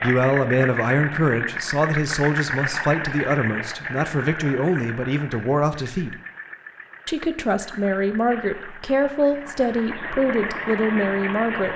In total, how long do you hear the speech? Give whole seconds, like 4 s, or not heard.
11 s.